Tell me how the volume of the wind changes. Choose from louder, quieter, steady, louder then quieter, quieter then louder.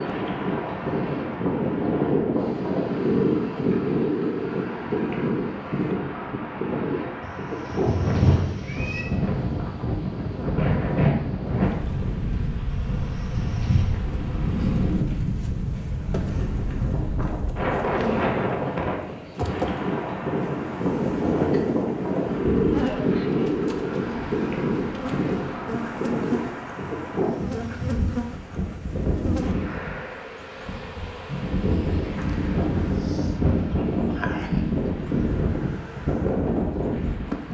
steady.